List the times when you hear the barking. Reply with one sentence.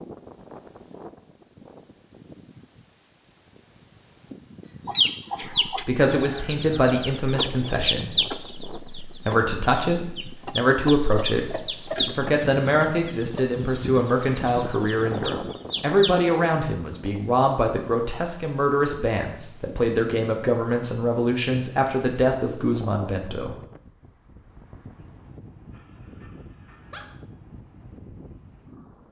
You can hear the barking from 25.7 to 27.1 s.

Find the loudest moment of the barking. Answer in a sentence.
The loudest moment of the barking is at 27 seconds.